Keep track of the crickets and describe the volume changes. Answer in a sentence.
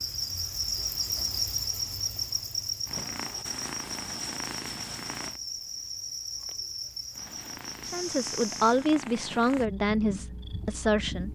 The volume of the crickets goes down.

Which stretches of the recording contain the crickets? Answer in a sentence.
You can hear the crickets from 0.0 to 8.9 s.